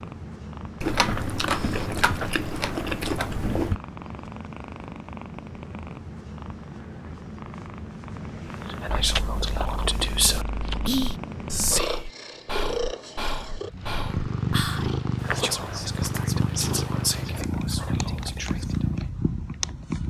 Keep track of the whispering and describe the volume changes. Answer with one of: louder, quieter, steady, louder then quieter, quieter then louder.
quieter.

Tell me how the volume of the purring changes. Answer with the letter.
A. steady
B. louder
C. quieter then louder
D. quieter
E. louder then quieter
B.